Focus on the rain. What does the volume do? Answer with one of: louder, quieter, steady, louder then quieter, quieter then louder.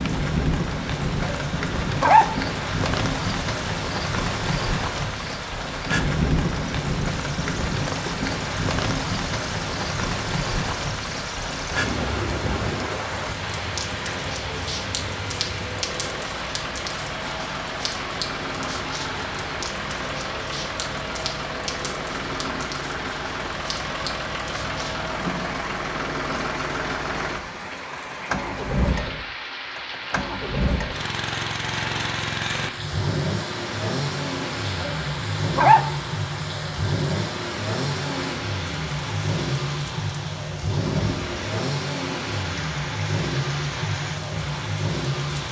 quieter.